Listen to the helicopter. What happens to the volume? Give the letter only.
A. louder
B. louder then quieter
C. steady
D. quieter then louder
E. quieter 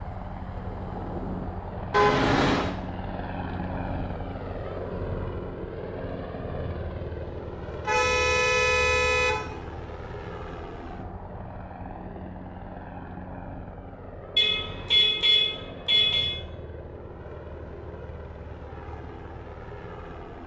E.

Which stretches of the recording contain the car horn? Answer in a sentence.
The car horn can be heard from 1.9 to 2.7 s, from 7.8 to 9.4 s and from 14.3 to 16.3 s.